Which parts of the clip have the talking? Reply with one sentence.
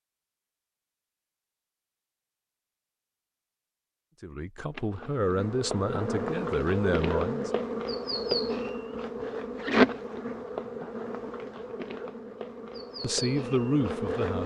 The talking can be heard from 4.2 to 7.5 s and from 13.0 to 14.4 s.